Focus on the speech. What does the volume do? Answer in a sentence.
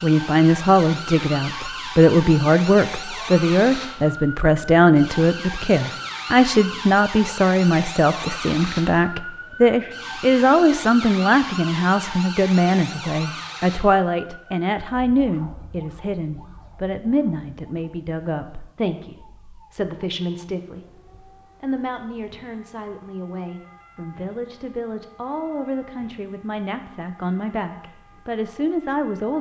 The loudness of the speech goes down.